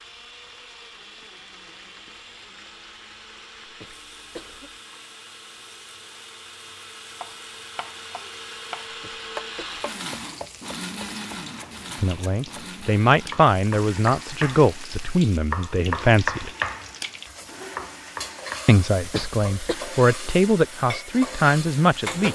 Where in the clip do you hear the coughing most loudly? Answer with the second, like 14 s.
19 s.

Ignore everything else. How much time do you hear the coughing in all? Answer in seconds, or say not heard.
3 s.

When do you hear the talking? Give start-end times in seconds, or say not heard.
12.0-16.5, 18.6-22.3.